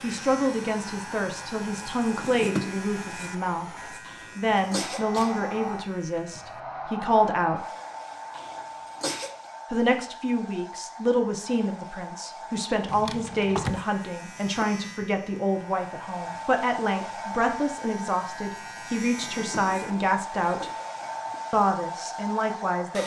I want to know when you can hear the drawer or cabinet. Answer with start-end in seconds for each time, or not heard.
2.1-2.8, 12.8-13.8, 19.1-20.1.